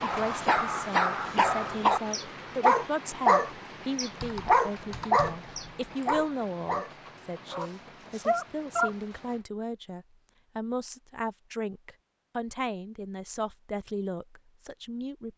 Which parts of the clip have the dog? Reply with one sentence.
You can hear the dog from 0.0 to 8.9 s.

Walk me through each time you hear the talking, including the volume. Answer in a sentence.
You can hear the talking from 0.0 to 15.3 s, at a steady volume.